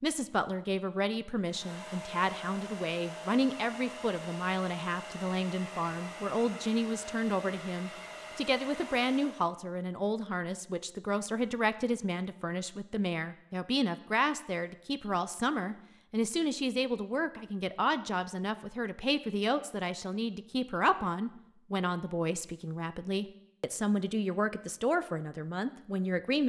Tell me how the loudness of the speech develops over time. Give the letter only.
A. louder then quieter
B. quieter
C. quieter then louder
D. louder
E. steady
E.